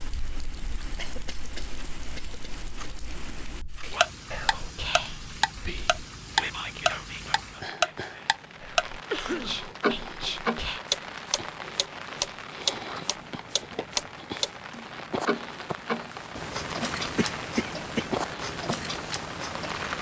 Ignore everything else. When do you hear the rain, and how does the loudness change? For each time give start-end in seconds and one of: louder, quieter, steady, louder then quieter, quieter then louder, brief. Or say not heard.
0.0-19.9 louder.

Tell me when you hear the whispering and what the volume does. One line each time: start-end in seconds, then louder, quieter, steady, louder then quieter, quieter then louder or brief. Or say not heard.
3.8-10.8 quieter then louder.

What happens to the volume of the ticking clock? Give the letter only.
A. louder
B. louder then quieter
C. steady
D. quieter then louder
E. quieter
B.